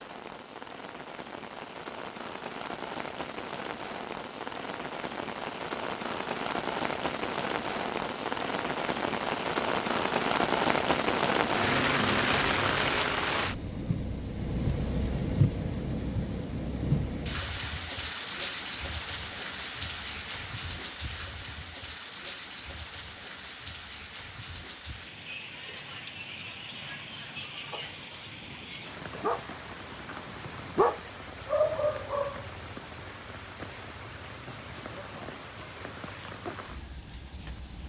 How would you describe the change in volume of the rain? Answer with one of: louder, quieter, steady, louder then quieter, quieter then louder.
louder then quieter.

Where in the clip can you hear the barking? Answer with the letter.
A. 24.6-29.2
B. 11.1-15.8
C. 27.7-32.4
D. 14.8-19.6
C.